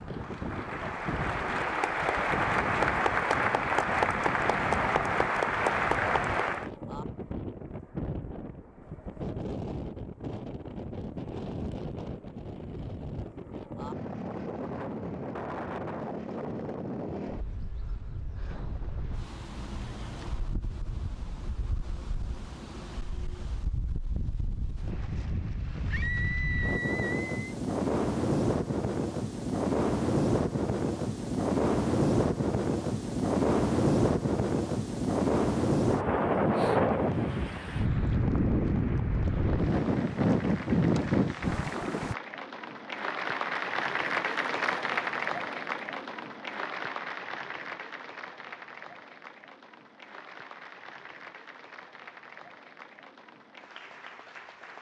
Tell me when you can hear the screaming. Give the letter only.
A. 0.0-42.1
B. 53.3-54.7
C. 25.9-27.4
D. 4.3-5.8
C.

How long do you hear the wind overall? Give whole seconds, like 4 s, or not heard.
42 s.